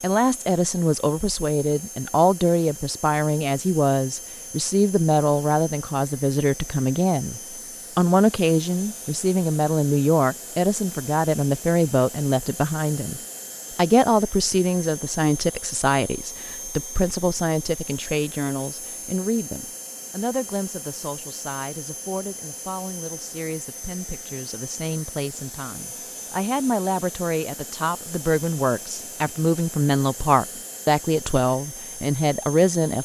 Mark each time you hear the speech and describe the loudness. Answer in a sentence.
The speech can be heard from 0.0 to 32.9 s, getting quieter then louder.